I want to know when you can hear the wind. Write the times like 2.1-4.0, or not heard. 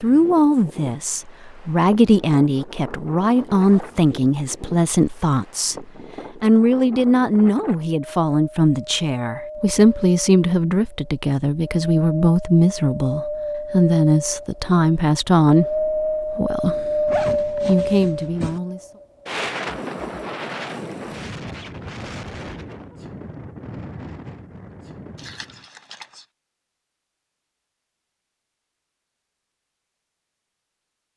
0.0-25.6.